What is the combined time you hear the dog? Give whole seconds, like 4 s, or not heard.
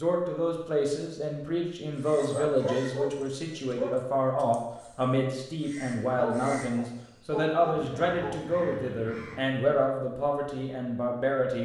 4 s.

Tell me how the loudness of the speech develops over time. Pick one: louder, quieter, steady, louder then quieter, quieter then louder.
steady.